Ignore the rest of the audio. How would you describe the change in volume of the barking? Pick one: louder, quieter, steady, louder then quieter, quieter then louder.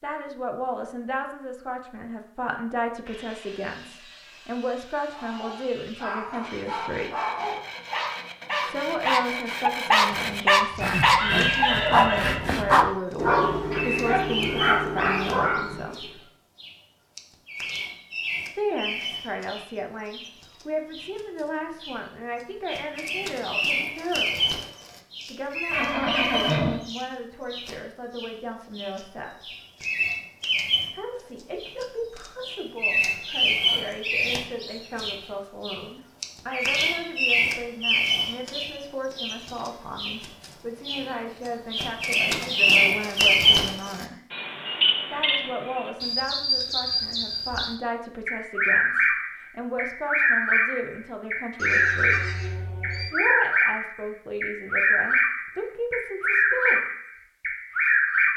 louder then quieter.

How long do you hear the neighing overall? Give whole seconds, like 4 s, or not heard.
5 s.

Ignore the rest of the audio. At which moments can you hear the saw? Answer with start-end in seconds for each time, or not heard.
3.0-12.8.